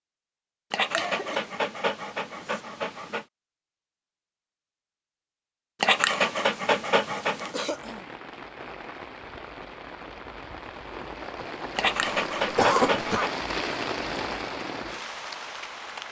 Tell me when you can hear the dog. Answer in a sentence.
You can hear the dog from 0.7 to 3.2 s, from 5.8 to 7.7 s and from 11.8 to 13.4 s.